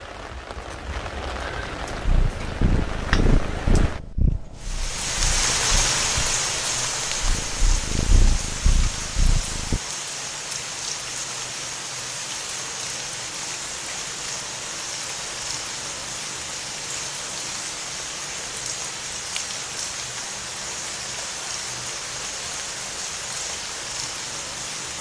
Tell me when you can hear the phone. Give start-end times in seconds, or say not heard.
not heard.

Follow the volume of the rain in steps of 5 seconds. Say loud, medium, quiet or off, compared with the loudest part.
medium, loud, medium, medium, medium.